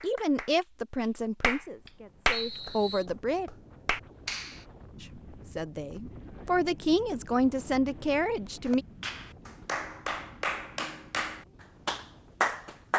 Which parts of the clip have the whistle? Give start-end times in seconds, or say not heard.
2.3-3.0.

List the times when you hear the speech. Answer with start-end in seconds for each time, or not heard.
0.0-3.5, 5.0-8.8.